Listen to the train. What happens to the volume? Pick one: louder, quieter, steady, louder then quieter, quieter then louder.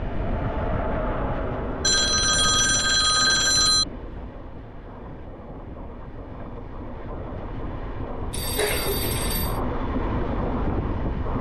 quieter then louder.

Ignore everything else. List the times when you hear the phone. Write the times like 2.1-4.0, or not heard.
1.8-3.9, 8.3-9.6.